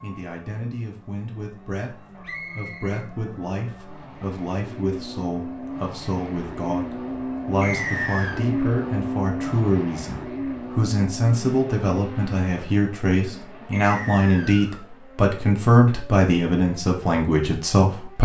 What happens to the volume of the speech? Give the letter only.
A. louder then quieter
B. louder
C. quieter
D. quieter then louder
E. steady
B.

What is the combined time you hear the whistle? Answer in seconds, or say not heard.
3 s.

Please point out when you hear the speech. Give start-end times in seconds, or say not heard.
0.0-18.2.